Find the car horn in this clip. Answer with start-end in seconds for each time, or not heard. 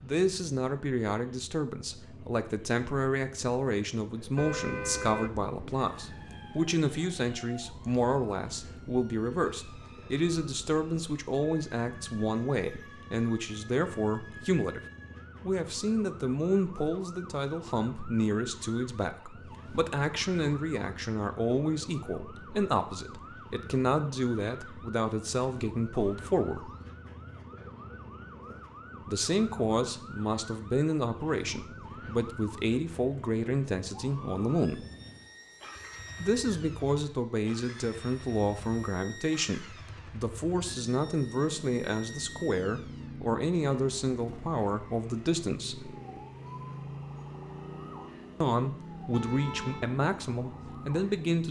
4.3-6.4, 49.1-50.0.